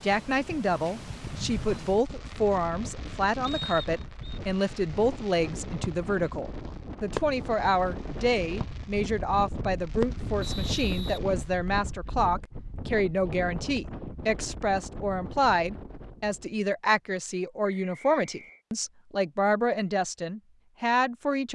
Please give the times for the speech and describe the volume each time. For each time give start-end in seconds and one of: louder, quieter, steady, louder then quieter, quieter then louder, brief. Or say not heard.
0.0-21.5 steady.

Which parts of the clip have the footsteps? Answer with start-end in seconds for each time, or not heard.
not heard.